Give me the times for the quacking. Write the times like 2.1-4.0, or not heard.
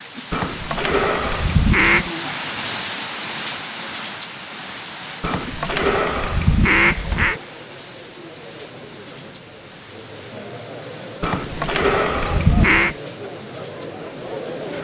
0.3-2.1, 5.2-7.4, 11.2-12.9.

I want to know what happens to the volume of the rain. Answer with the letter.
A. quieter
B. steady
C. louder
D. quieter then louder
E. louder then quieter
A.